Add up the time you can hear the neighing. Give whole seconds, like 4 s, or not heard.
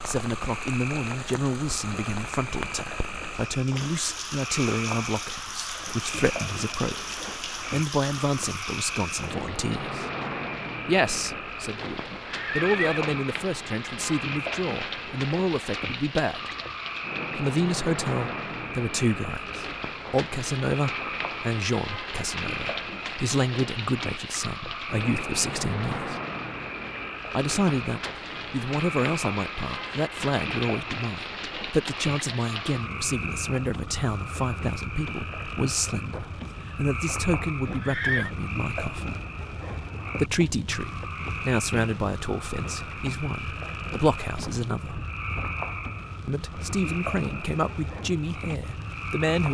2 s.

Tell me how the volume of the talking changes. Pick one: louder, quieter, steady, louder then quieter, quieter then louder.
steady.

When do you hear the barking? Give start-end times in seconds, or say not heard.
not heard.